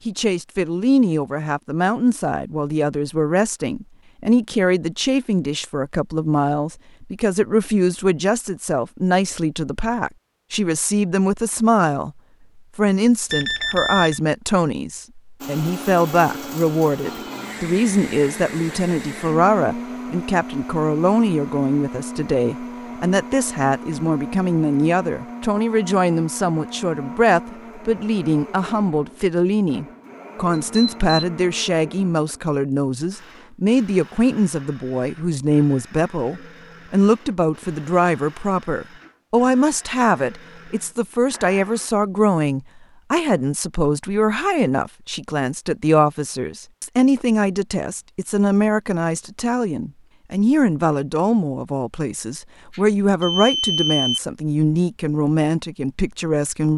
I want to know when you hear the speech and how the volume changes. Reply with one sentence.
The speech can be heard from 0.1 to 12.1 s, at a steady volume; and from 12.8 to 56.7 s, at a steady volume.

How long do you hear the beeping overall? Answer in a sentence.
The beeping can be heard for 3 seconds in total.